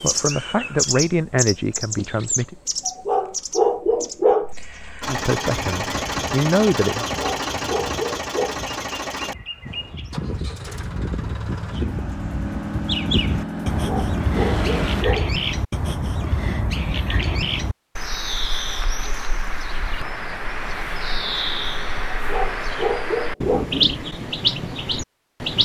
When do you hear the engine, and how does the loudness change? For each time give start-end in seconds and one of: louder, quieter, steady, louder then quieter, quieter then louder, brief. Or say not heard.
5.0-15.1 quieter then louder.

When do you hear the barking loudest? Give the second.
4 s.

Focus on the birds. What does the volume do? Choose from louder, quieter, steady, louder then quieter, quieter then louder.
quieter then louder.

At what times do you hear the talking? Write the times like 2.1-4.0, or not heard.
0.0-2.5, 5.0-7.0.